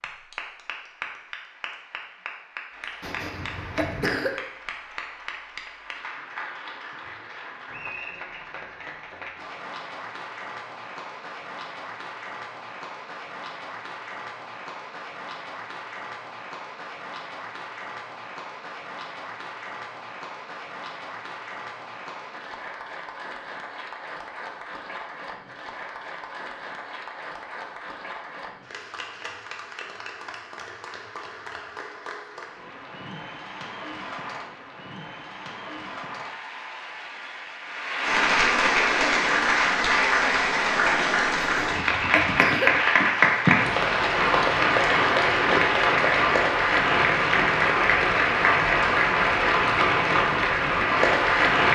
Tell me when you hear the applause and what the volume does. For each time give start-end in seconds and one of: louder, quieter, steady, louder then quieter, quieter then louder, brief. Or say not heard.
0.0-51.7 louder.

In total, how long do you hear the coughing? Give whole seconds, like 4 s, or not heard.
3 s.